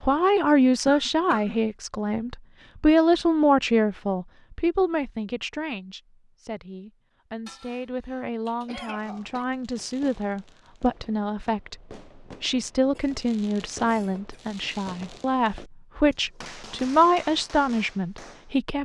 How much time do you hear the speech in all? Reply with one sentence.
You can hear the speech for 18 seconds altogether.